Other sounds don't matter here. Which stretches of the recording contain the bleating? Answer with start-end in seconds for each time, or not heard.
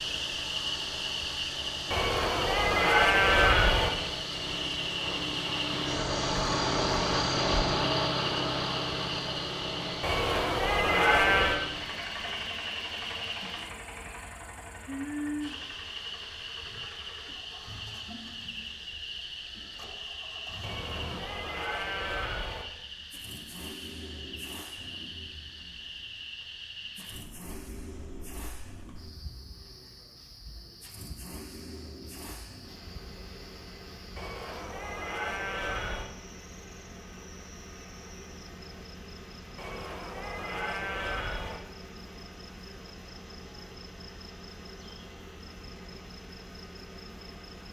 1.9-3.9, 10.0-11.6, 20.6-22.6, 34.1-36.1, 39.5-41.6.